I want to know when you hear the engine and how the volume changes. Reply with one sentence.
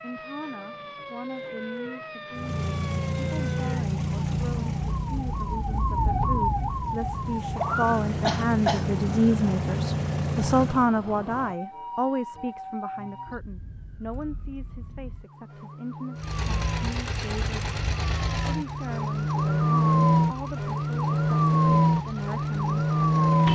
The engine can be heard from 2.3 to 10.9 s, getting quieter then louder; and from 16.1 to 23.5 s, getting quieter.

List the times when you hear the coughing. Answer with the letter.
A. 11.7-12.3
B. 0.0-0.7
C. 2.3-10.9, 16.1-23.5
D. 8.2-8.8
D.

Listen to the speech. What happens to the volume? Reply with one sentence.
The loudness of the speech goes up, then down.